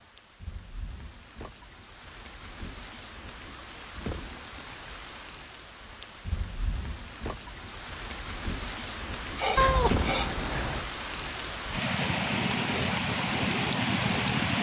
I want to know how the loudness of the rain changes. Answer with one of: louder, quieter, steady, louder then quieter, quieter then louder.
louder.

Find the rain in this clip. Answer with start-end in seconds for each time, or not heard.
0.0-14.5.